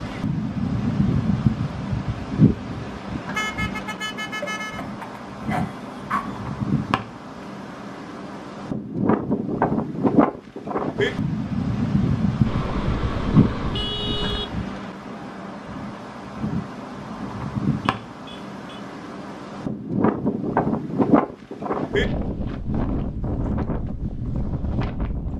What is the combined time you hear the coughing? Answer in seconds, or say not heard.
2 s.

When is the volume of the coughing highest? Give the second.
6 s.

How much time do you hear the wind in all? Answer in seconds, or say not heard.
25 s.